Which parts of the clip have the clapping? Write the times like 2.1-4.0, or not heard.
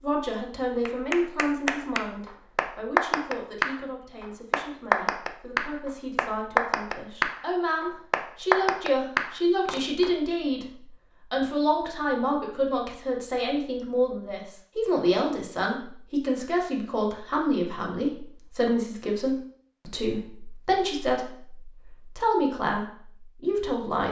0.8-10.1.